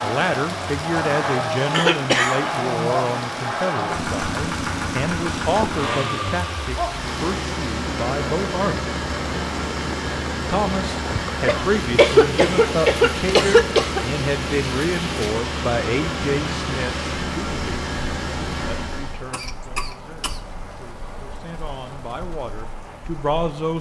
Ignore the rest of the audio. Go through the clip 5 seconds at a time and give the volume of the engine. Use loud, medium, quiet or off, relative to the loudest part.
loud, loud, loud, loud, off.